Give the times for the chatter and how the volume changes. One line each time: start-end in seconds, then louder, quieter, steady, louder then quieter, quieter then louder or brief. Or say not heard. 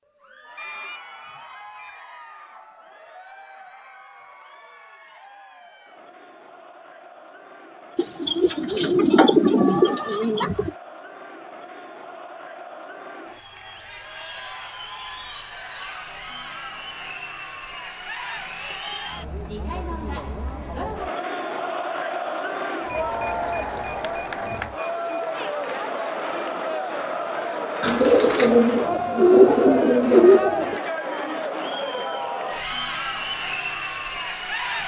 0.1-34.8 louder.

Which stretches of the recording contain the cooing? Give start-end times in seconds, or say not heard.
8.0-10.7, 27.8-30.8.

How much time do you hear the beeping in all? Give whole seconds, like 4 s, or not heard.
4 s.